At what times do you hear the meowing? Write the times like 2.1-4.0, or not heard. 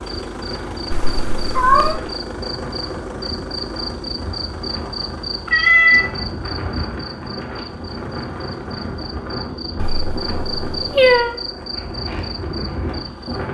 0.9-2.0, 5.5-6.1, 9.8-11.3.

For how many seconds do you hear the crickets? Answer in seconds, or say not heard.
13 s.